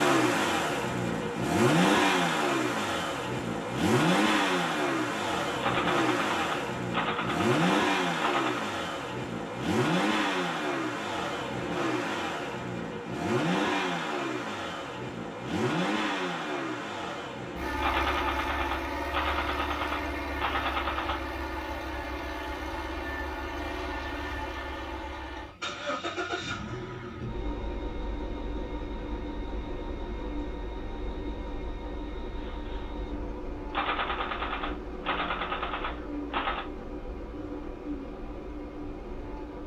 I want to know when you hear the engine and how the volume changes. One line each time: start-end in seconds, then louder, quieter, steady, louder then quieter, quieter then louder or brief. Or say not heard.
0.0-39.6 quieter.